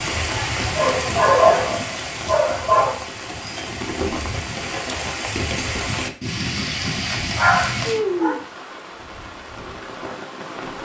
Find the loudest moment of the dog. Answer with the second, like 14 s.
1 s.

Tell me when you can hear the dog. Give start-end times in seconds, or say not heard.
0.8-3.0, 7.3-8.3.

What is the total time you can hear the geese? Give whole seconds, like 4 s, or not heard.
not heard.